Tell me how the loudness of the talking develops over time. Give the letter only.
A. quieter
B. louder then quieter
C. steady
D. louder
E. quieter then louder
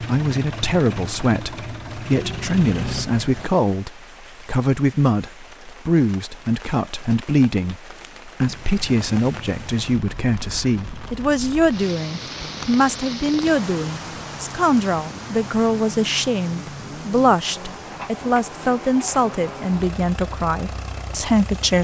C.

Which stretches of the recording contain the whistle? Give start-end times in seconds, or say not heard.
not heard.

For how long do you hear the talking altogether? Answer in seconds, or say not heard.
22 s.